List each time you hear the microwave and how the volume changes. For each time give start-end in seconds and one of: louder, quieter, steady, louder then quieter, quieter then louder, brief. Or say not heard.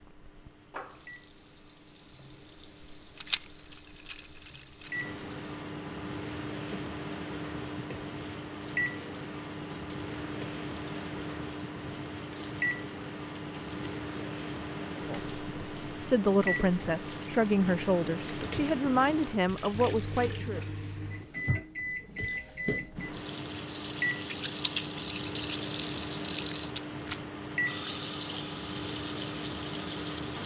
0.0-30.4 louder.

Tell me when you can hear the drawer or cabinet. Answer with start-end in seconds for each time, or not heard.
not heard.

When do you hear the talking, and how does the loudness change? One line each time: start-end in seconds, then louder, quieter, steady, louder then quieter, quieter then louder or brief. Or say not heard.
14.9-20.6 steady.